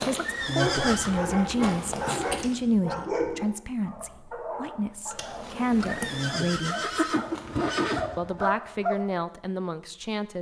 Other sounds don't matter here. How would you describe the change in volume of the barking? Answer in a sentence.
The volume of the barking goes down, then up.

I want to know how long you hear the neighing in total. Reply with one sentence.
The neighing can be heard for 4 seconds in total.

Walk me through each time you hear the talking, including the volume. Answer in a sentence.
You can hear the talking from 0.0 to 7.0 s, getting quieter then louder; and briefly from 8.2 to 10.3 s.